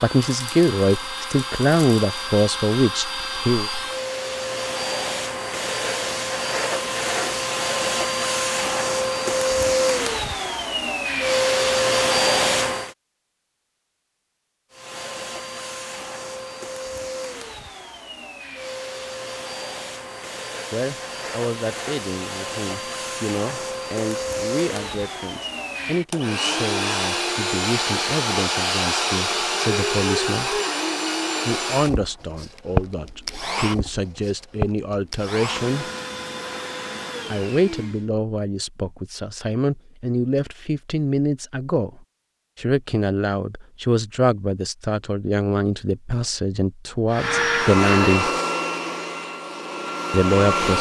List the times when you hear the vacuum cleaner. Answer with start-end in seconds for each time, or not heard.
0.0-12.9, 14.7-38.1, 47.1-50.7.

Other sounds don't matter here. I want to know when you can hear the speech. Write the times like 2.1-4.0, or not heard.
0.0-3.7, 20.7-30.6, 31.4-35.9, 37.3-48.3, 50.1-50.7.